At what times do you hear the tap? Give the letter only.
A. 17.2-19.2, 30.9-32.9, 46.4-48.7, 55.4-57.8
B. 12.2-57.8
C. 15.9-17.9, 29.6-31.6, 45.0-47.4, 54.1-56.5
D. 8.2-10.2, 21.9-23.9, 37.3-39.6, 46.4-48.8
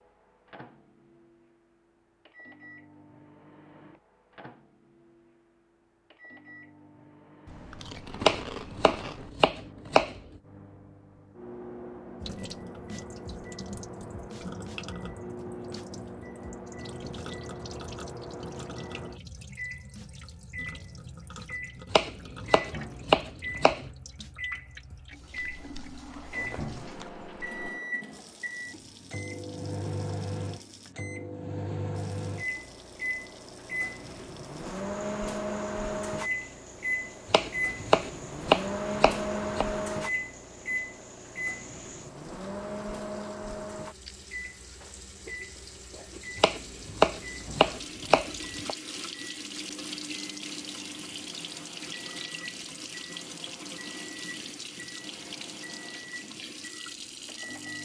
B.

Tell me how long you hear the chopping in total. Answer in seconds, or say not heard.
9 s.